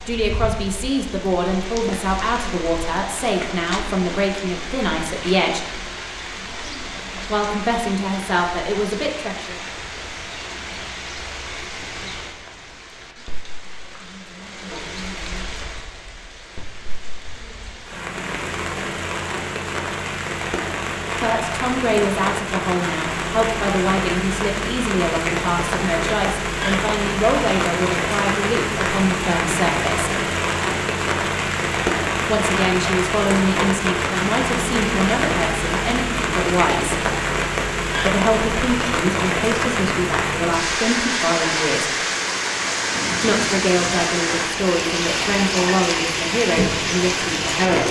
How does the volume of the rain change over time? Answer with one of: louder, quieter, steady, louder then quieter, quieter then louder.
louder.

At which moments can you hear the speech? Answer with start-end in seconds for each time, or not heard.
0.1-5.8, 7.2-9.6, 21.1-30.1, 32.2-37.0, 38.0-42.0, 43.2-47.8.